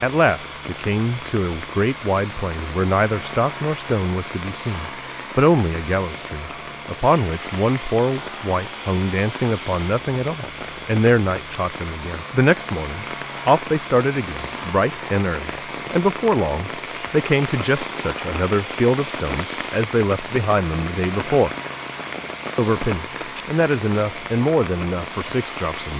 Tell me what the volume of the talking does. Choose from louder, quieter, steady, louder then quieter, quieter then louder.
steady.